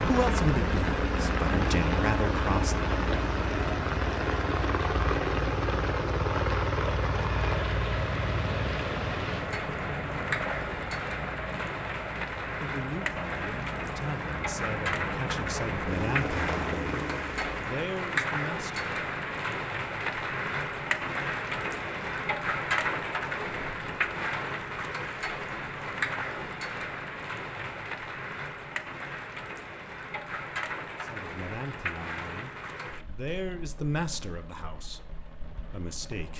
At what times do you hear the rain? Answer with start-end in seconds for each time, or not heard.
0.0-36.3.